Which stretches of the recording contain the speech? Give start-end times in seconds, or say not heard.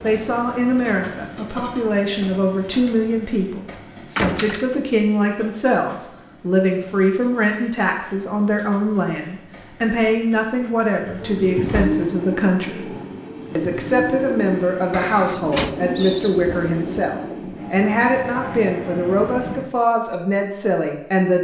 0.0-12.9, 13.6-21.3.